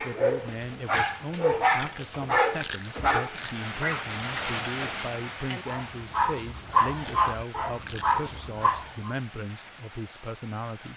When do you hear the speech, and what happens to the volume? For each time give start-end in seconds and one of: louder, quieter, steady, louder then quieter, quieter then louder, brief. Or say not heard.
0.0-10.9 steady.